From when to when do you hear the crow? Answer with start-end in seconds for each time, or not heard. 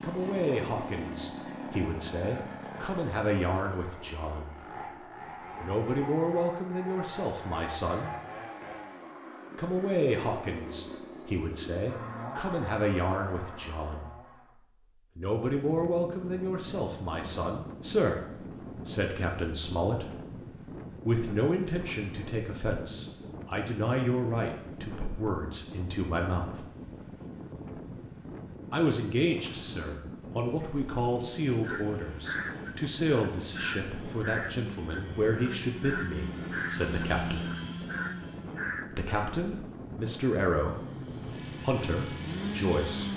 31.6-39.7.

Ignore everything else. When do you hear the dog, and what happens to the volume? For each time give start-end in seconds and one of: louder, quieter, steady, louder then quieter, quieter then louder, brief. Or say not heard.
not heard.